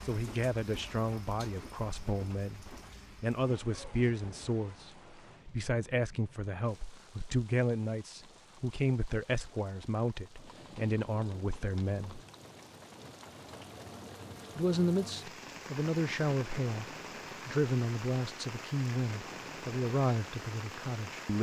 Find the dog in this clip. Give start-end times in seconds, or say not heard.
not heard.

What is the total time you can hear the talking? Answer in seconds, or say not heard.
18 s.